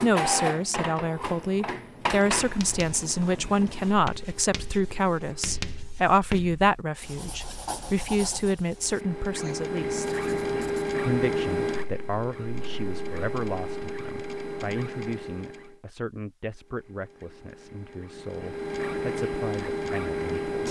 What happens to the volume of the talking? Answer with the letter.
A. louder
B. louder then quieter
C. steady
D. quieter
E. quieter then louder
D.